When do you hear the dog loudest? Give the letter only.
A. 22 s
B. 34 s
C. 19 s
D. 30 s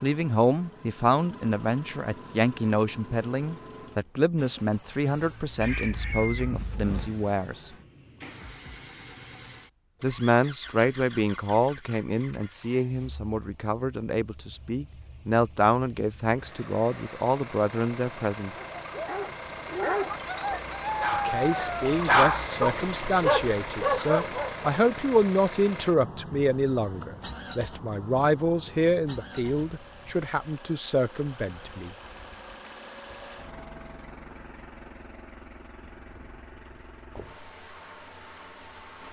A.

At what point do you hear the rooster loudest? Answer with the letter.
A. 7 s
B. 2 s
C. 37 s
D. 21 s
D.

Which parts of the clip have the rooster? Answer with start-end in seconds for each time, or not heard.
5.6-7.1, 20.1-22.1, 35.8-37.4.